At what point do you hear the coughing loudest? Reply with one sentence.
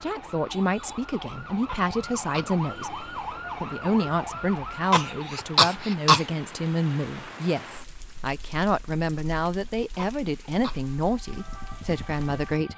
The volume of the coughing peaks at 6 seconds.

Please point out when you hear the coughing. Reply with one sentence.
You can hear the coughing from 1.6 to 2.5 s, from 4.9 to 6.2 s and from 9.9 to 10.9 s.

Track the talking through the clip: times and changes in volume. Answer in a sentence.
The talking can be heard from 0.0 to 12.7 s, at a steady volume.